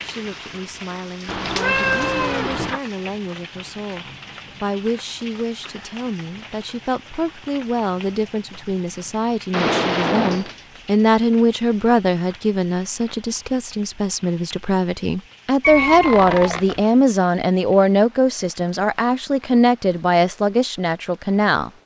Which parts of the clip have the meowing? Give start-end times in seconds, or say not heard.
1.2-2.8, 9.5-10.6, 15.6-16.9.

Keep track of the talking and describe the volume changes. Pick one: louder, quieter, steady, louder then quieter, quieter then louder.
louder.